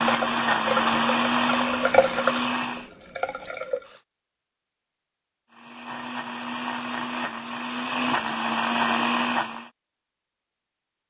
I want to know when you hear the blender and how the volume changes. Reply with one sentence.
You can hear the blender briefly from 0.0 to 2.9 s; and from 5.5 to 9.7 s, getting louder.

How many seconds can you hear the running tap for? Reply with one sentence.
You can hear the running tap for 4 seconds altogether.